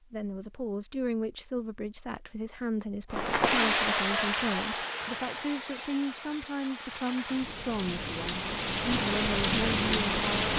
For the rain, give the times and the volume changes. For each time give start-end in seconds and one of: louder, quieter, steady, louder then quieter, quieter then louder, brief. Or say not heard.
3.1-10.5 quieter then louder.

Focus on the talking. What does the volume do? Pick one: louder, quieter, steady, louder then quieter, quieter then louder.
steady.